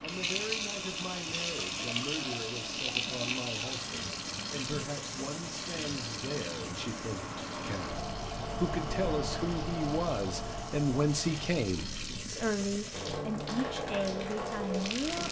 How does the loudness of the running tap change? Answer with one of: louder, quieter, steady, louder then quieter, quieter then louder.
quieter then louder.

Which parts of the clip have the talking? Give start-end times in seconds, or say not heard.
0.0-15.2.